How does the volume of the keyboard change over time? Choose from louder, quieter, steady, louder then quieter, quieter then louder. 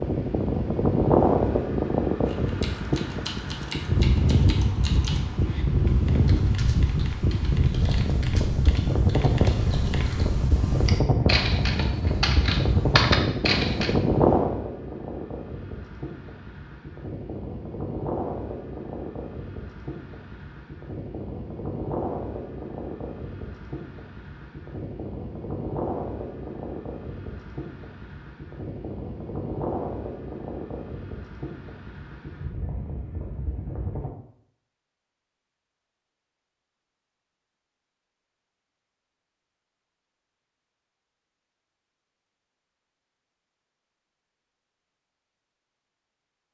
louder.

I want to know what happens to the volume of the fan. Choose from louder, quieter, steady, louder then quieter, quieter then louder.
quieter.